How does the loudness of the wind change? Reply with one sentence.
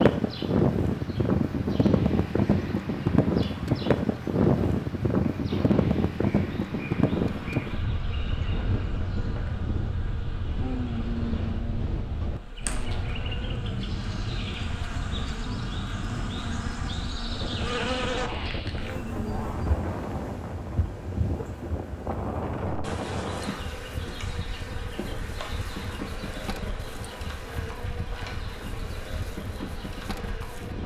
The volume of the wind goes down.